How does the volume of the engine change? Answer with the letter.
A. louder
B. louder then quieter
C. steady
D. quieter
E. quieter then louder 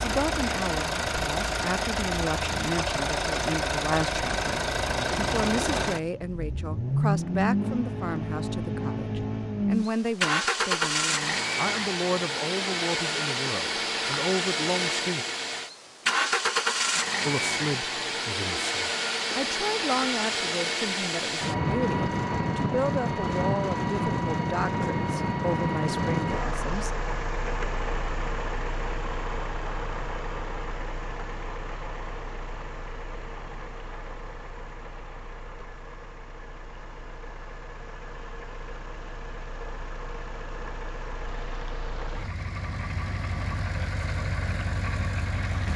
D.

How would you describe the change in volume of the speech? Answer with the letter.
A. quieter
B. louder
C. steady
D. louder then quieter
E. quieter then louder
C.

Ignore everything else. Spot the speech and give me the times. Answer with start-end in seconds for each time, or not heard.
0.0-15.2, 17.2-27.0.